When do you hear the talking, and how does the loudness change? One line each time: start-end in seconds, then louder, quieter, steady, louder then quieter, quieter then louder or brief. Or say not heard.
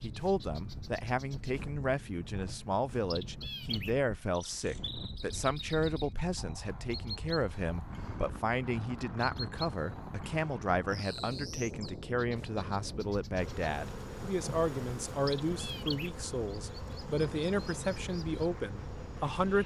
0.0-19.6 steady.